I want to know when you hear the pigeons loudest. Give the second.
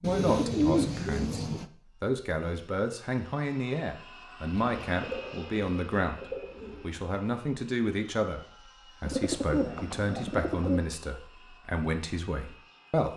1 s.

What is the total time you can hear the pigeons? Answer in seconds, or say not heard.
6 s.